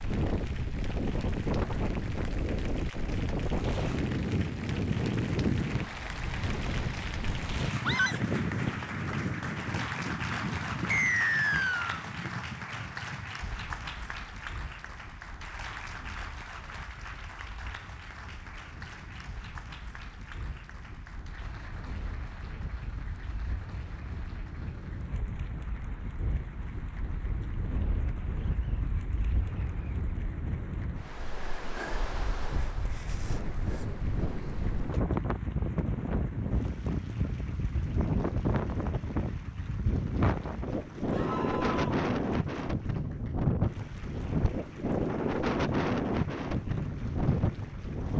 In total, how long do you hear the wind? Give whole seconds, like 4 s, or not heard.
48 s.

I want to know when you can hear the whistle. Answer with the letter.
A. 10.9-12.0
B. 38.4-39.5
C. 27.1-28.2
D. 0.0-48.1
A.